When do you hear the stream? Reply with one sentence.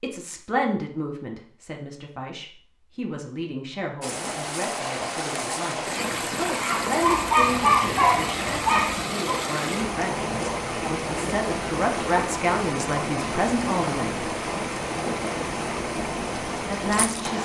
You can hear the stream from 4.0 to 17.3 s.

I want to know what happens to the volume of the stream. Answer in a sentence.
The volume of the stream stays about the same.